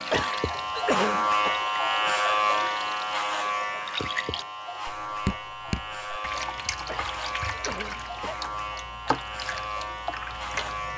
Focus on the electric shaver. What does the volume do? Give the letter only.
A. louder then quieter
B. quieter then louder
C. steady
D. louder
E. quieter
E.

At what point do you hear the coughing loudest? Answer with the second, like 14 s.
1 s.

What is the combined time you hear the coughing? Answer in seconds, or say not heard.
3 s.